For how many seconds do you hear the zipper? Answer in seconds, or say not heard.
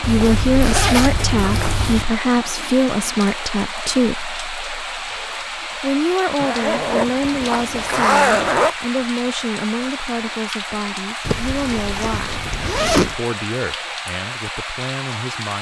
6 s.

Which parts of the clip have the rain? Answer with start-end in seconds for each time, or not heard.
0.0-15.5.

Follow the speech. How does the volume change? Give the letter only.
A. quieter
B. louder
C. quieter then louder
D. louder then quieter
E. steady
A.